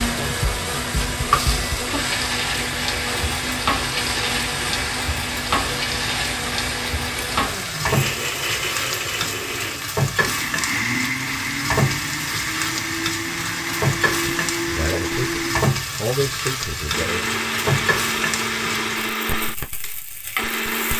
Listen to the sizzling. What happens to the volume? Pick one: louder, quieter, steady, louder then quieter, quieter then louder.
steady.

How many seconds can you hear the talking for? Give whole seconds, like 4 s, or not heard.
3 s.